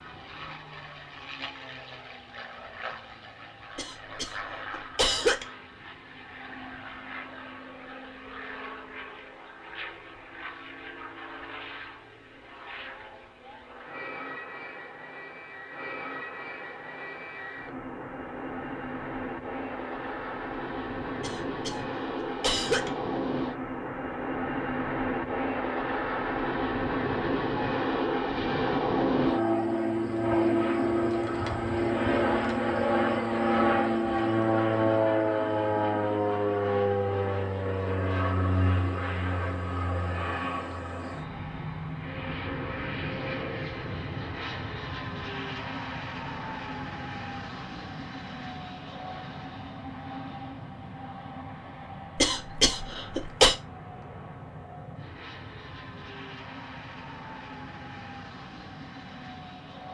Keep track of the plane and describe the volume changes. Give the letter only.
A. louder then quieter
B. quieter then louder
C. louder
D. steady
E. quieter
A.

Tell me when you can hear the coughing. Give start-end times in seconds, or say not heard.
3.8-5.5, 21.2-22.9, 52.1-53.5.